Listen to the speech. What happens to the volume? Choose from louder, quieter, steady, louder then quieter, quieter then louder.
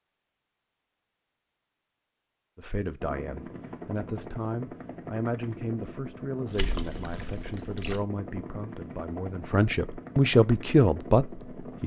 louder.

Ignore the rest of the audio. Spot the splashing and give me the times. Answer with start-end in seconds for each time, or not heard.
6.5-8.1.